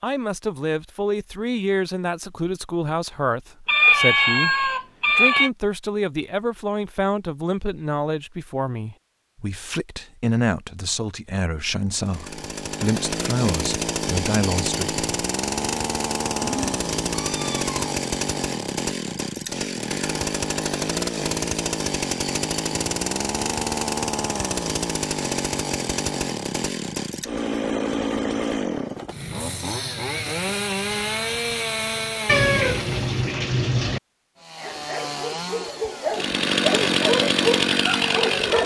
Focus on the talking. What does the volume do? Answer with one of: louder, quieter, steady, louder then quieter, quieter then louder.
steady.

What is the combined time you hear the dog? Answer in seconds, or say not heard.
4 s.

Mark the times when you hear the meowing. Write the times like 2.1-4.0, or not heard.
3.6-5.5, 16.4-17.9, 32.2-34.0.